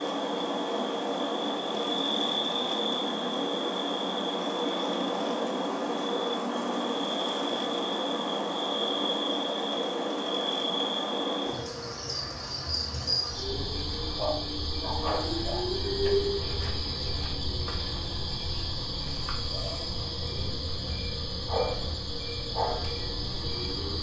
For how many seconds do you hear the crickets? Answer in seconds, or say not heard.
24 s.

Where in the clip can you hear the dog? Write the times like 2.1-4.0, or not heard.
14.2-15.7.